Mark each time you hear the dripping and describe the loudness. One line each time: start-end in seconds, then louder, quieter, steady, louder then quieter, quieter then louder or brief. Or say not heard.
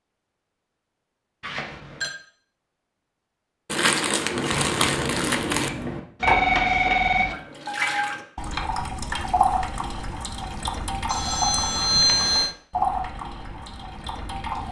4.3-14.6 steady.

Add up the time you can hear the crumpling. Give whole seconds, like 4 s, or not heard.
2 s.